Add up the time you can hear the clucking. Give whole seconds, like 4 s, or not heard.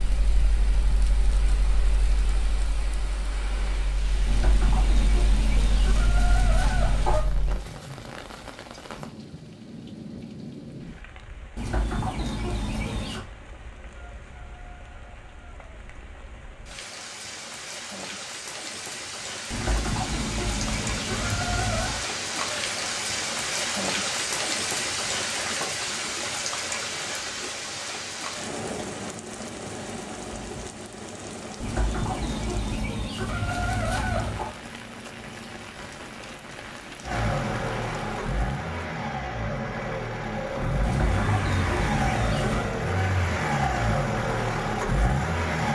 12 s.